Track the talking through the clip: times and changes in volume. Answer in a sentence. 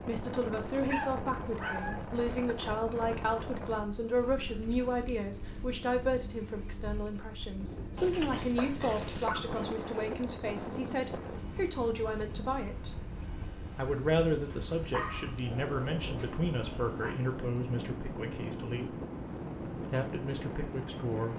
You can hear the talking from 0.1 to 13.0 s, at a steady volume; from 13.8 to 18.9 s, getting quieter; and briefly from 19.9 to 21.3 s.